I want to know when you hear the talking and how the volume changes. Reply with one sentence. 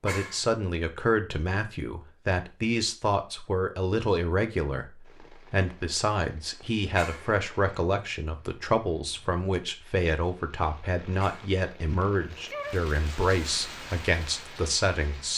You can hear the talking from 0.0 to 15.3 s, at a steady volume.